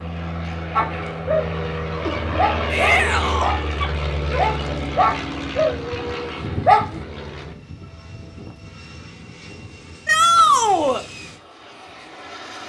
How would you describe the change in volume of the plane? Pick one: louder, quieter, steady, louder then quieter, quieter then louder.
quieter.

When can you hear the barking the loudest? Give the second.
7 s.